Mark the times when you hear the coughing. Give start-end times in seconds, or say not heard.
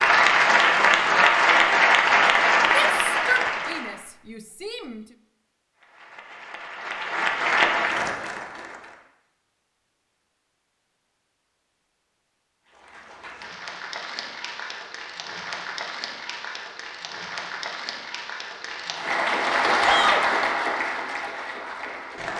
not heard.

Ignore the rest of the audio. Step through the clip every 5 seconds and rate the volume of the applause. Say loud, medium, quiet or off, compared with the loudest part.
loud, medium, quiet, medium, medium.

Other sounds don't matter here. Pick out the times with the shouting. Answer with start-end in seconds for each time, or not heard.
2.7-5.0, 19.8-20.2.